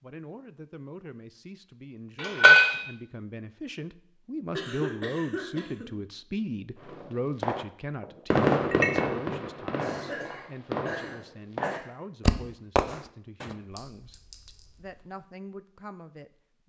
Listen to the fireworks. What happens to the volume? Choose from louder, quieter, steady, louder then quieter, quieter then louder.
quieter then louder.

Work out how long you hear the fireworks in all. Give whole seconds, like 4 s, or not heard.
7 s.